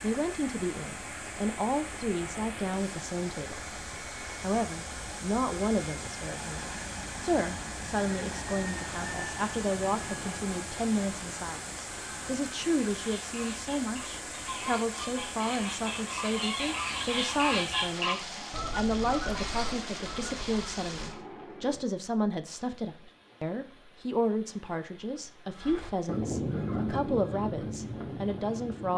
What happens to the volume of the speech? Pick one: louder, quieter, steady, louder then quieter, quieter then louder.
steady.